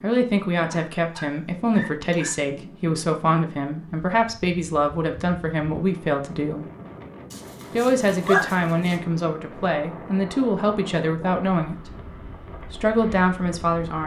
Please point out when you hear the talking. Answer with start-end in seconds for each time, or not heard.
0.0-6.7, 7.8-11.8, 12.7-14.0.